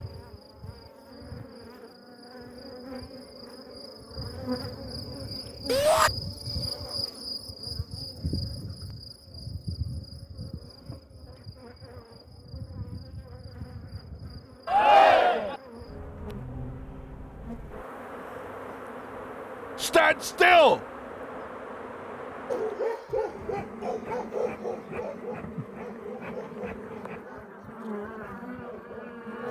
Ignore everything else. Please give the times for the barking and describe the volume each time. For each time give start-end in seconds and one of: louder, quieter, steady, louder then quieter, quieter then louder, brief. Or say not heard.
22.4-29.4 quieter.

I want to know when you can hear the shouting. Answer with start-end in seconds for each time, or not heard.
5.7-6.1, 14.7-15.6, 19.8-20.8.